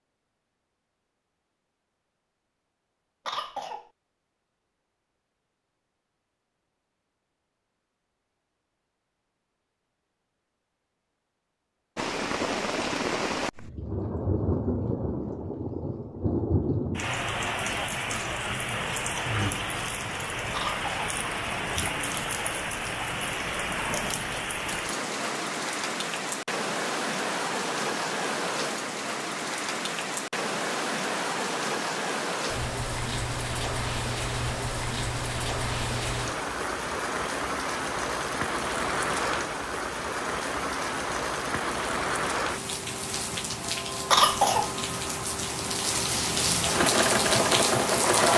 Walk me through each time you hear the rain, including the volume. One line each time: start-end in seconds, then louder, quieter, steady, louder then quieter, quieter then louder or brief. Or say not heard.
11.9-48.3 steady.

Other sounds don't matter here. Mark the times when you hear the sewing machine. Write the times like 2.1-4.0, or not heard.
46.6-48.3.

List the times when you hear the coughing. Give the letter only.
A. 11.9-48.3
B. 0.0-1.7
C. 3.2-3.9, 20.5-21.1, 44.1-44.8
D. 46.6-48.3
C.